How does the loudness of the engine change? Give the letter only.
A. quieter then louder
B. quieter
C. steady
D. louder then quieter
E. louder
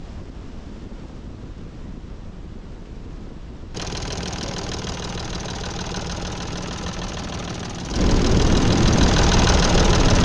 E.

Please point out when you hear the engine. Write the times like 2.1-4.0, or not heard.
3.7-10.2.